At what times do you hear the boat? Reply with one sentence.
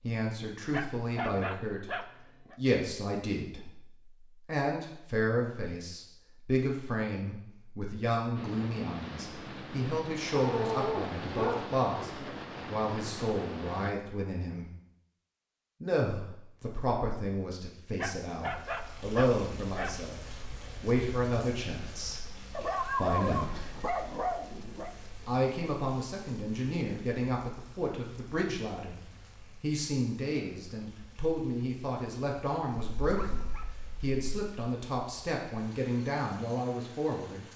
You can hear the boat from 8.3 to 13.9 s.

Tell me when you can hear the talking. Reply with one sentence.
The talking can be heard from 0.0 to 14.7 s, from 15.8 to 23.8 s and from 25.2 to 37.5 s.